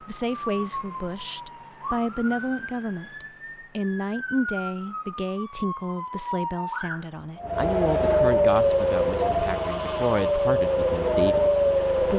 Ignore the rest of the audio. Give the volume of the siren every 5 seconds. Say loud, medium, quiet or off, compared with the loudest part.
quiet, loud, loud.